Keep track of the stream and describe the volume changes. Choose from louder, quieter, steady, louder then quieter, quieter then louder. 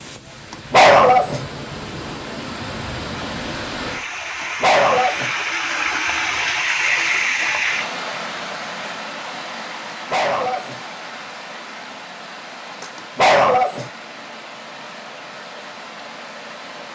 louder then quieter.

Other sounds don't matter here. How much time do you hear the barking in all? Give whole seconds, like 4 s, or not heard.
4 s.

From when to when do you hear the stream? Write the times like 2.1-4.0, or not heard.
0.0-16.9.